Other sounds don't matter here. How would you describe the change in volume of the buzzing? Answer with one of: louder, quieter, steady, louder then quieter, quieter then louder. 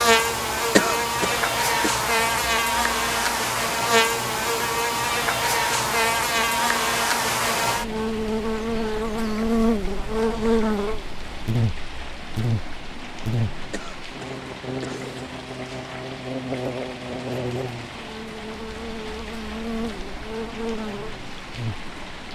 quieter.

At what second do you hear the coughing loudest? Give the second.
1 s.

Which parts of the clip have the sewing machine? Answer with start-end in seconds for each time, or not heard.
not heard.